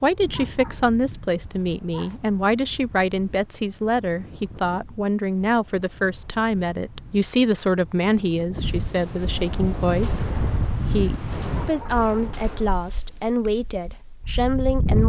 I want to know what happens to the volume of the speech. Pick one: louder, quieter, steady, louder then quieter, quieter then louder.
steady.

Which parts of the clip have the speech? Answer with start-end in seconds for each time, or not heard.
0.0-15.0.